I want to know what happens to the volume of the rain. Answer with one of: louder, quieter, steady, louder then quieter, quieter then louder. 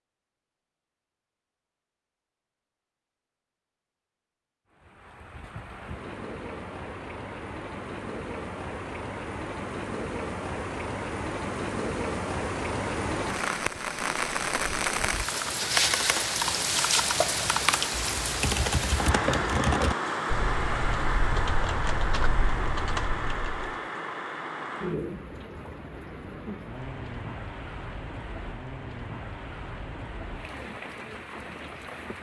louder then quieter.